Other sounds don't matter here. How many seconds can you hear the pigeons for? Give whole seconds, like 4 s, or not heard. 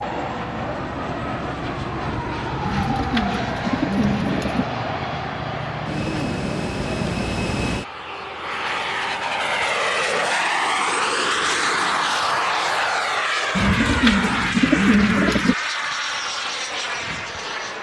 4 s.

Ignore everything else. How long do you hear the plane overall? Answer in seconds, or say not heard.
18 s.